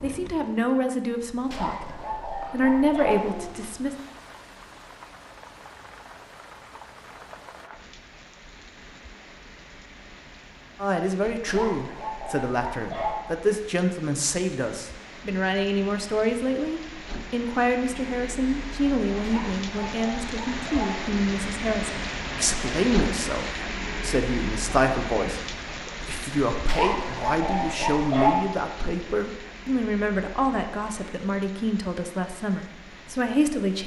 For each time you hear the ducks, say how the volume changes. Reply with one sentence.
The ducks can't be heard in this clip.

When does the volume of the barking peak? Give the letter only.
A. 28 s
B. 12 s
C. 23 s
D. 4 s
A.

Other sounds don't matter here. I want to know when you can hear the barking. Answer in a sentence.
The barking can be heard from 1.5 to 3.5 s, from 11.4 to 13.2 s, from 19.2 to 21.2 s and from 26.6 to 28.4 s.